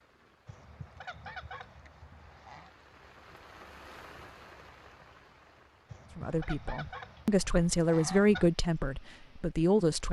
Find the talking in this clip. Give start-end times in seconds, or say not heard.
6.2-10.0.